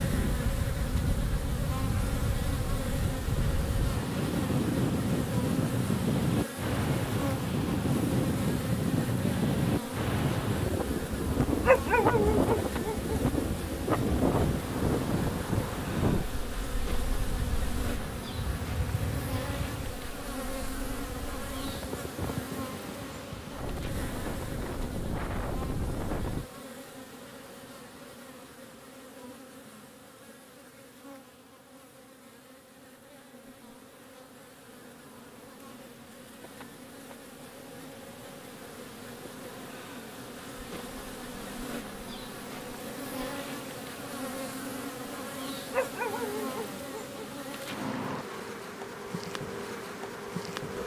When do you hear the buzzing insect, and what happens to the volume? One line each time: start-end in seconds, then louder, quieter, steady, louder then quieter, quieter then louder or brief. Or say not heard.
0.0-50.8 quieter then louder.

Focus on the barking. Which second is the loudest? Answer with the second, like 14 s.
12 s.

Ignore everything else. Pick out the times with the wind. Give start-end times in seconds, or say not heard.
0.0-26.4.